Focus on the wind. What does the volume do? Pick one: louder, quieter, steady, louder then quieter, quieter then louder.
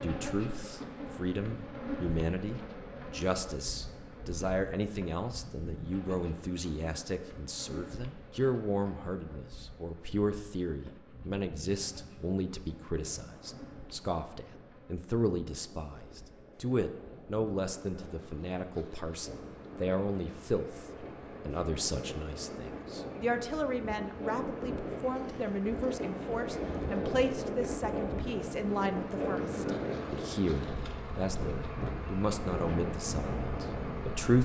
louder.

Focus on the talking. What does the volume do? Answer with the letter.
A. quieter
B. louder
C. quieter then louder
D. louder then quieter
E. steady
E.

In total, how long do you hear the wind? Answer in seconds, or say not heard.
23 s.